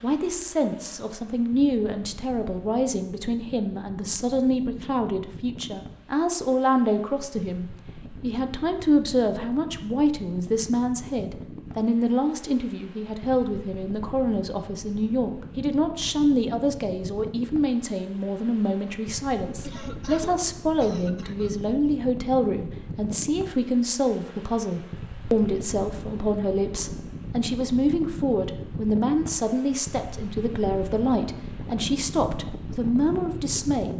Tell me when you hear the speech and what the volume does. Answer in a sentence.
The speech can be heard from 0.0 to 33.9 s, at a steady volume.